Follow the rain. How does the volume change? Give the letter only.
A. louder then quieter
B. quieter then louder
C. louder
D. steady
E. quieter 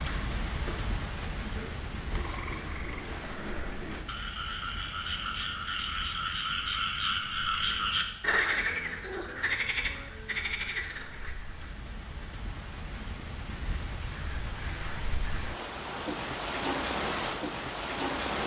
B.